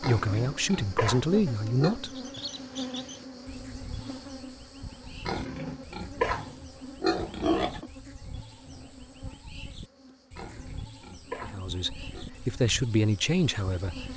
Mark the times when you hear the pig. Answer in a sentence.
You can hear the pig from 0.0 to 2.0 s, from 5.2 to 7.8 s and from 10.3 to 12.2 s.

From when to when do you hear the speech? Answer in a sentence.
The speech can be heard from 0.0 to 2.4 s and from 11.4 to 14.1 s.